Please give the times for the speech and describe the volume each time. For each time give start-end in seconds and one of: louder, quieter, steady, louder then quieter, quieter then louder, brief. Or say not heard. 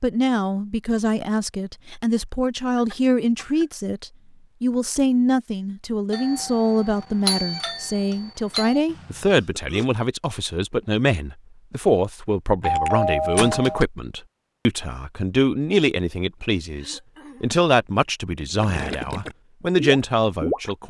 0.0-20.8 steady.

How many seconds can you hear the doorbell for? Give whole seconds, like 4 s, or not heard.
4 s.